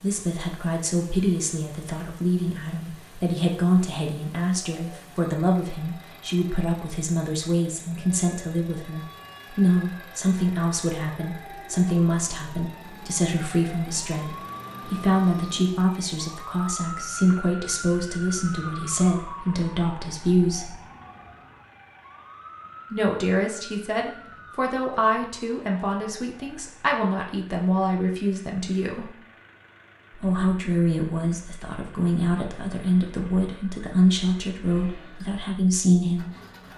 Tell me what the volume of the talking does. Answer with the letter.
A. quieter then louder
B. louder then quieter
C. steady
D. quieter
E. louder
C.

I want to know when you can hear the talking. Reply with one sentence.
The talking can be heard from 0.0 to 20.8 s, from 22.9 to 29.1 s and from 30.1 to 36.3 s.